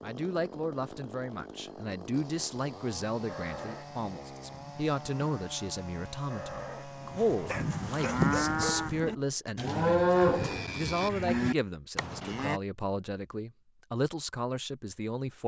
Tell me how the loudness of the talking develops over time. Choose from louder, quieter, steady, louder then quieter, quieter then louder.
steady.